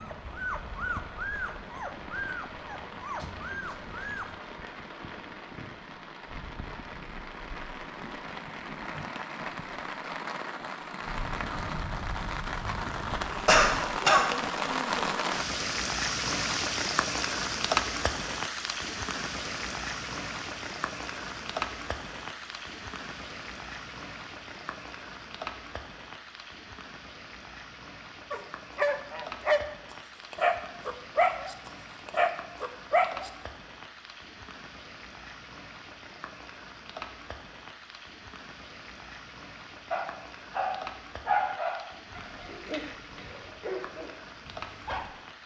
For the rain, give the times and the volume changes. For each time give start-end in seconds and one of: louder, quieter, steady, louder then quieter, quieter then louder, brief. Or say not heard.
0.0-45.4 louder then quieter.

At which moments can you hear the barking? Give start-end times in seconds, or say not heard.
0.0-4.2, 28.3-33.3, 39.9-45.1.